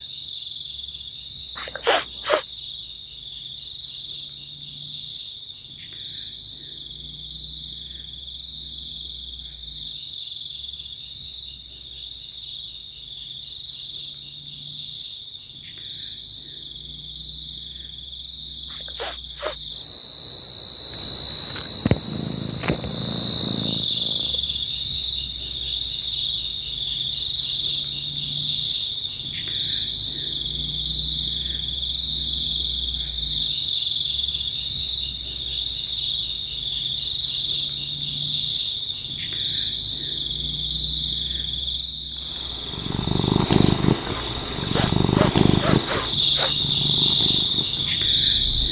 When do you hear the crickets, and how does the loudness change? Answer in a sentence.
You can hear the crickets from 0.0 to 48.6 s, getting louder.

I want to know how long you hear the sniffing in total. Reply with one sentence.
You can hear the sniffing for 4 seconds altogether.